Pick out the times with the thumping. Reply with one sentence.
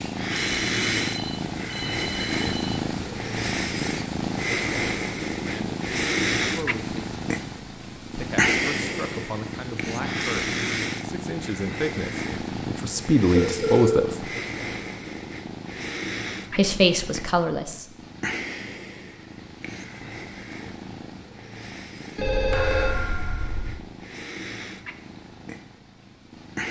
The thumping can be heard from 22.5 to 23.7 s.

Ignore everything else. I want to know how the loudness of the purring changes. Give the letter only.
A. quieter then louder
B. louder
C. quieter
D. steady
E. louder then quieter
C.